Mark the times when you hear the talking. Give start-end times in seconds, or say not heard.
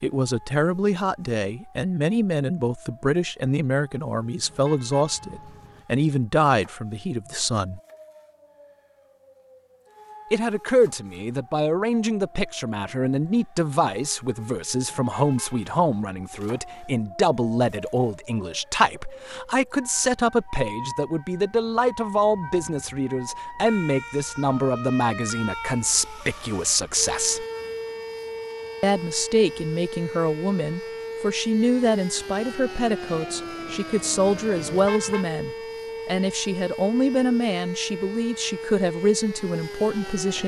0.0-7.8, 10.3-27.4, 28.8-40.4.